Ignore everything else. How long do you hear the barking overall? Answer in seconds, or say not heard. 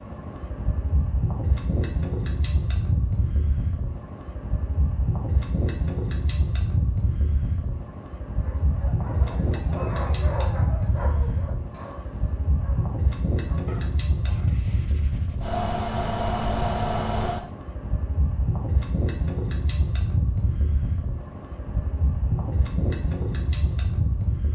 7 s.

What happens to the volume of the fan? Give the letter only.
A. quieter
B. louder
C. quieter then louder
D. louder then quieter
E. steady
E.